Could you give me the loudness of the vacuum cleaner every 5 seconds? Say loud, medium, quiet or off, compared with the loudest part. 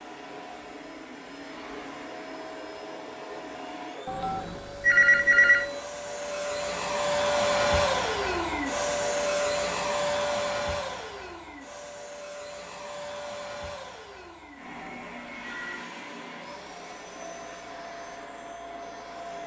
quiet, loud, medium, quiet.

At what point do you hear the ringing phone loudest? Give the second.
5 s.